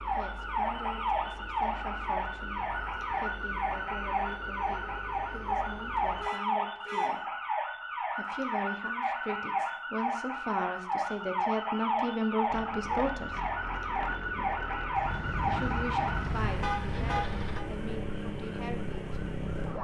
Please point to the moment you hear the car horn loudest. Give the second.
17 s.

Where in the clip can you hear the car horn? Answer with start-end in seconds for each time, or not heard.
6.2-7.1, 14.9-17.6.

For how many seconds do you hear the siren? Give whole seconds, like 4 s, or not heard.
20 s.